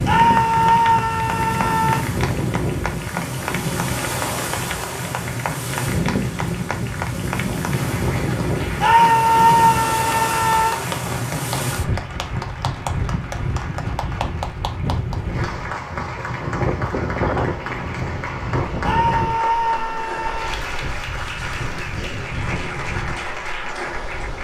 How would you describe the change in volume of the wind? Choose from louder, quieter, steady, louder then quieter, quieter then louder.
quieter.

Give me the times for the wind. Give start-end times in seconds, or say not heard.
0.0-24.3.